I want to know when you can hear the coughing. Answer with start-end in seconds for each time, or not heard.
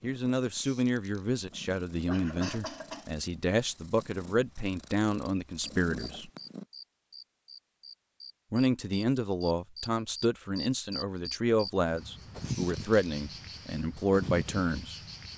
2.0-3.1.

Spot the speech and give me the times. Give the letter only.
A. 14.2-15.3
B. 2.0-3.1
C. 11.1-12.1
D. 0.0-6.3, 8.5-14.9
D.